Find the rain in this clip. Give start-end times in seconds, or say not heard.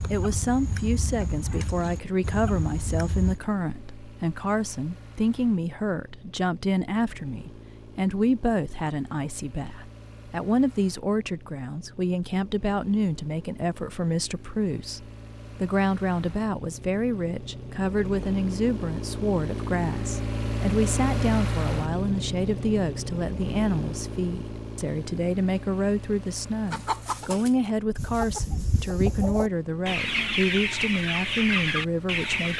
not heard.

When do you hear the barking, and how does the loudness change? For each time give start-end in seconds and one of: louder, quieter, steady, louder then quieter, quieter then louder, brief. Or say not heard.
not heard.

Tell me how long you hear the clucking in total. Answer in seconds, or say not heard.
9 s.